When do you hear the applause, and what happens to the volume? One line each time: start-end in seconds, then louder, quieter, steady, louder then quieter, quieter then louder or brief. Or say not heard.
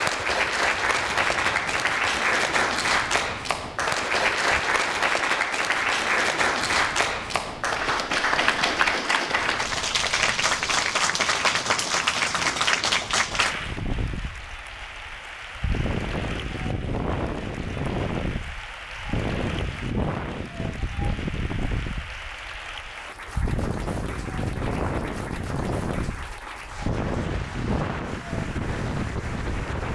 0.0-29.9 quieter.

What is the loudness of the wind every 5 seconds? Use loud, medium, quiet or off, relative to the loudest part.
quiet, quiet, medium, loud, loud, loud.